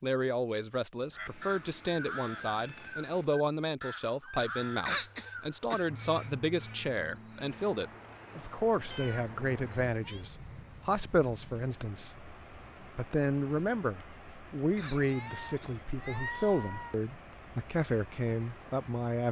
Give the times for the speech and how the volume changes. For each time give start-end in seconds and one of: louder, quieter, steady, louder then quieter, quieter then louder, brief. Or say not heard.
0.0-19.2 steady.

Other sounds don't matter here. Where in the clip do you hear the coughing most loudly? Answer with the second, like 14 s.
5 s.